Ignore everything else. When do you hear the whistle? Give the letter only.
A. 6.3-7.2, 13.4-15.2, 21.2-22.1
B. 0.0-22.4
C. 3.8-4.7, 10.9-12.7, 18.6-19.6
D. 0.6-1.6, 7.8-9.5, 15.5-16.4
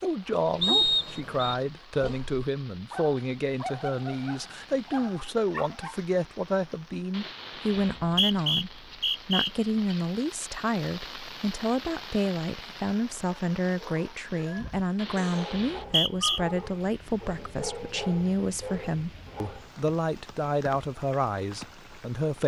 D.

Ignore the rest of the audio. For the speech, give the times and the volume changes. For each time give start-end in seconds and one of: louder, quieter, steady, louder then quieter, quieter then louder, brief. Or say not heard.
0.0-22.4 steady.